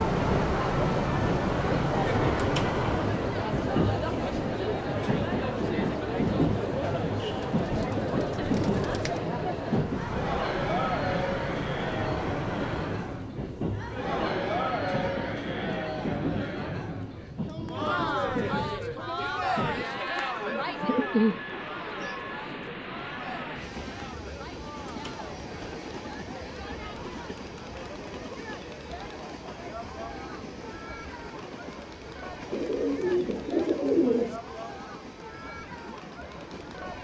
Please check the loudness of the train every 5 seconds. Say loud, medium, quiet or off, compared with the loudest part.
loud, loud, medium, medium, medium, quiet, quiet, quiet.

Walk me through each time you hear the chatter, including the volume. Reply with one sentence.
The chatter can be heard from 0.0 to 36.9 s, getting quieter.